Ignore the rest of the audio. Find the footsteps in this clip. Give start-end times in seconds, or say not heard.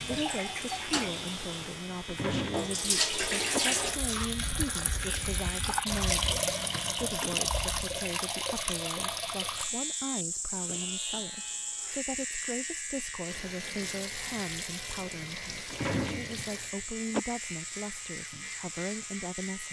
not heard.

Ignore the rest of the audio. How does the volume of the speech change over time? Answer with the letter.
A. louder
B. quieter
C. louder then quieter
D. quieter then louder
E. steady
E.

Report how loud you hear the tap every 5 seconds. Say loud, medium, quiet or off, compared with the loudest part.
loud, loud, medium, medium.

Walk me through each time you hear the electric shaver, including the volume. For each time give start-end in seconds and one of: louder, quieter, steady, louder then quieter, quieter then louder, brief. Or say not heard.
0.0-19.6 steady.